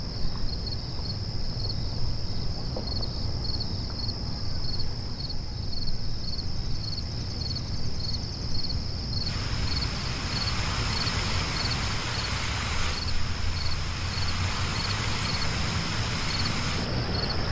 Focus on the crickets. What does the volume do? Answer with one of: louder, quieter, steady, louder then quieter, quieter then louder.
steady.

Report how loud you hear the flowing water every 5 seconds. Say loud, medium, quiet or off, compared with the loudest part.
quiet, quiet, loud, loud.